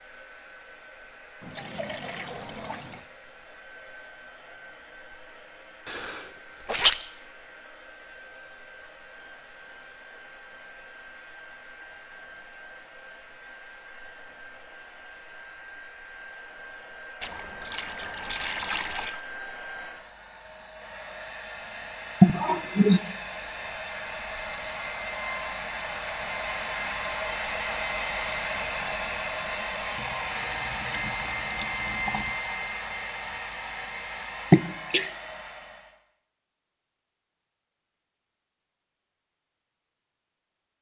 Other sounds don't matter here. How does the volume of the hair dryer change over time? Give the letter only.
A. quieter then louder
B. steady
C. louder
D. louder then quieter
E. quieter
C.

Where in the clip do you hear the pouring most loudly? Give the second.
19 s.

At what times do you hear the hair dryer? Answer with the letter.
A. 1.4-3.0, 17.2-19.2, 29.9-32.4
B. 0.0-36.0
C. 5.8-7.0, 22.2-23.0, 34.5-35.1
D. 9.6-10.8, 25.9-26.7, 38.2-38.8
B.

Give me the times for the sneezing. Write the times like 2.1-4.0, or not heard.
5.8-7.0, 22.2-23.0, 34.5-35.1.